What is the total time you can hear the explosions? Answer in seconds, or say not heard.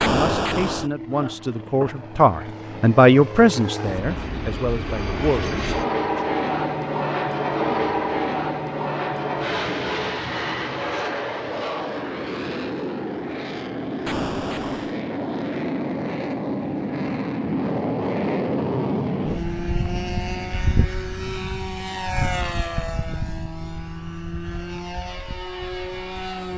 2 s.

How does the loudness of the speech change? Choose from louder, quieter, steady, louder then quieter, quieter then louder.
louder then quieter.